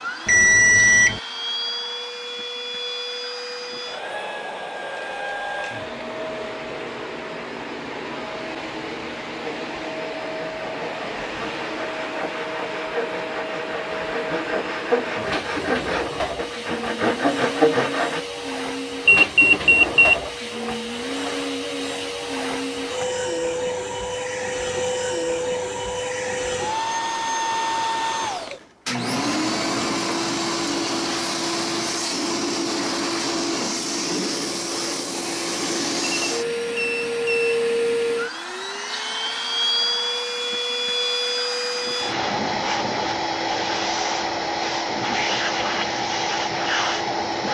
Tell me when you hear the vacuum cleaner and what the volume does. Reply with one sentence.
The vacuum cleaner can be heard from 0.0 to 47.4 s, getting louder.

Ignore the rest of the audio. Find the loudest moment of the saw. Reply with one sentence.
The loudest moment of the saw is at 18 seconds.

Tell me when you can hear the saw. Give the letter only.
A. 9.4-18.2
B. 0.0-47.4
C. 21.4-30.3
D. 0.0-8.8
A.